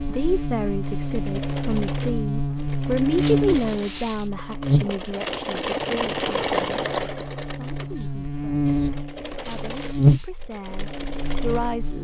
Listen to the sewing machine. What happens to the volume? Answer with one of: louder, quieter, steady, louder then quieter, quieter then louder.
louder then quieter.